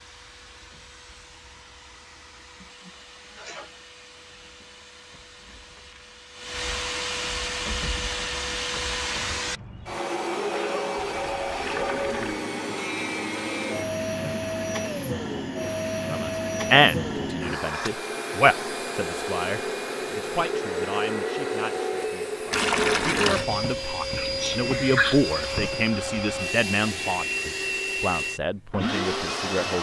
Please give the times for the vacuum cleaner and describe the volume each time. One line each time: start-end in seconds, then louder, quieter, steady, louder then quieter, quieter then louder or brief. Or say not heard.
0.0-29.7 louder.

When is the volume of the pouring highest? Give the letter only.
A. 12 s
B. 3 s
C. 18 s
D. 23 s
D.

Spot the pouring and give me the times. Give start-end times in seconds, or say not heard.
11.0-12.4, 22.5-23.4.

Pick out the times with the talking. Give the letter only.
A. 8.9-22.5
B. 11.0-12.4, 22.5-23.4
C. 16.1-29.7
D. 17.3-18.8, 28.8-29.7
C.